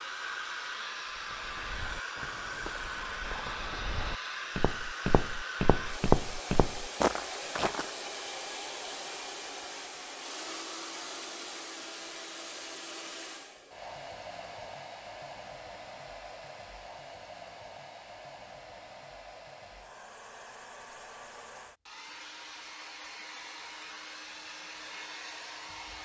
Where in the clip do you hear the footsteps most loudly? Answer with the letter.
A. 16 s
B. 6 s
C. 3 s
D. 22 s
B.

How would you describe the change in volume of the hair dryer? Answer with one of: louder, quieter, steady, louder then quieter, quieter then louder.
quieter.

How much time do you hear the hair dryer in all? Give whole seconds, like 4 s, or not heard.
26 s.